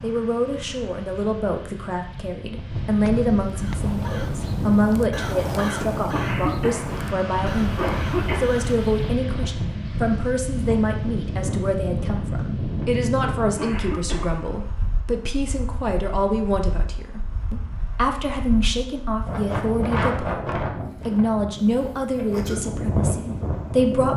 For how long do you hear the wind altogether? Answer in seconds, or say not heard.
24 s.